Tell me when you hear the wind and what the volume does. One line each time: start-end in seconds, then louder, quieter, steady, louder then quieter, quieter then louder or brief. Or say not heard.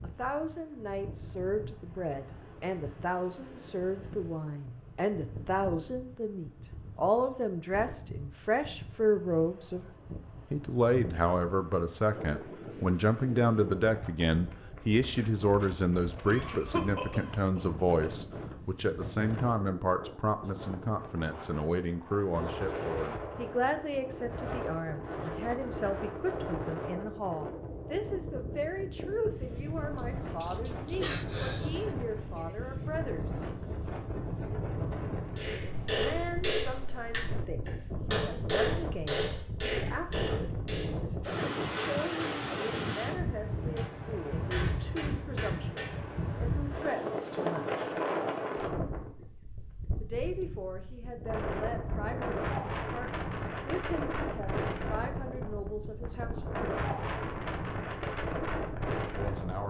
0.0-59.6 louder.